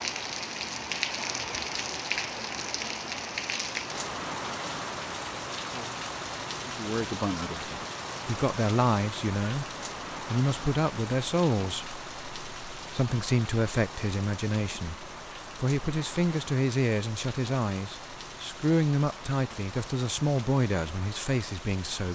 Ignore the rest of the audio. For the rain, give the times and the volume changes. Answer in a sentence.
You can hear the rain from 0.0 to 22.1 s, getting quieter.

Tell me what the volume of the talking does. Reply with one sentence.
The volume of the talking stays about the same.